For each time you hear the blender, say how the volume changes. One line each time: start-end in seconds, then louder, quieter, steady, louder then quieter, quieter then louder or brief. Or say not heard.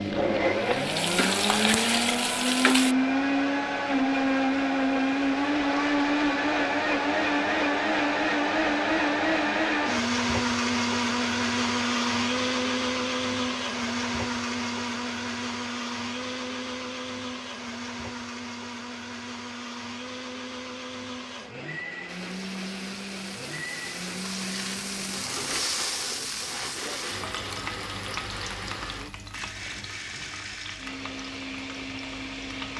0.0-32.7 quieter.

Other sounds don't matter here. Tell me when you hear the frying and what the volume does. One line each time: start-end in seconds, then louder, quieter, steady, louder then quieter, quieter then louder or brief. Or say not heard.
0.0-3.0 brief
22.1-32.7 louder then quieter.